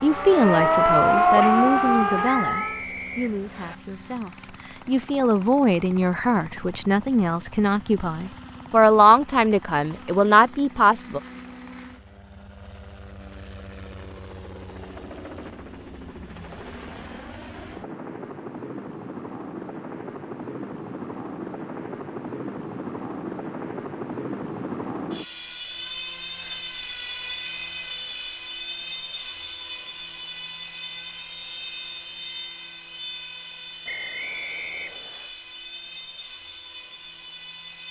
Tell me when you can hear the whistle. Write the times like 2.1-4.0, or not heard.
2.5-3.8, 33.9-35.3.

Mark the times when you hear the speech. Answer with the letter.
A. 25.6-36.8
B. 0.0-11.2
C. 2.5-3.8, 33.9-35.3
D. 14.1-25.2
B.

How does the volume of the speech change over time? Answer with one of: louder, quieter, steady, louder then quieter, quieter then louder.
quieter then louder.